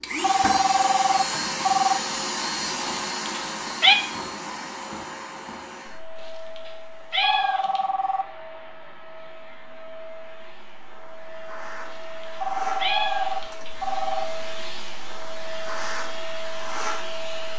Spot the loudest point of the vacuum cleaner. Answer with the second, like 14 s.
1 s.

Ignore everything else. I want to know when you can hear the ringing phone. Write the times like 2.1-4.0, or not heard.
0.2-2.0, 7.2-8.2, 12.4-14.2.